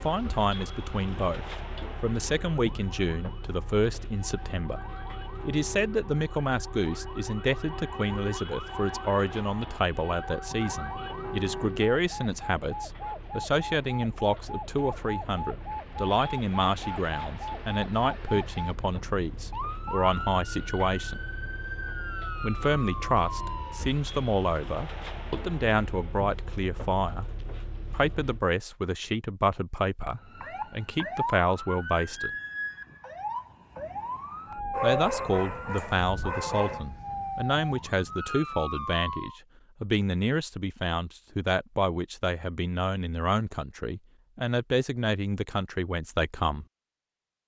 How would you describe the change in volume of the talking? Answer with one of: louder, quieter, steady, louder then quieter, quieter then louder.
steady.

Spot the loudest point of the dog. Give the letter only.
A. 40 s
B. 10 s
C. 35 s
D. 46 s
C.